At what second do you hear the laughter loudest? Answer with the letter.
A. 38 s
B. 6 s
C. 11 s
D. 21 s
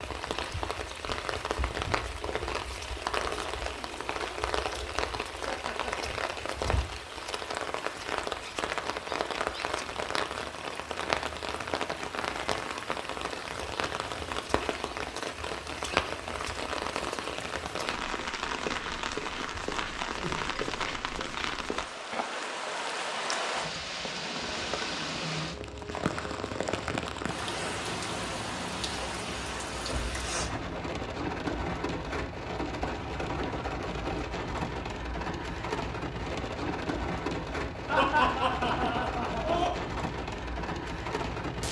A.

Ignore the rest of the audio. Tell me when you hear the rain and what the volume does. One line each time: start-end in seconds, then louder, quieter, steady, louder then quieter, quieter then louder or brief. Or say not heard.
0.0-41.6 steady.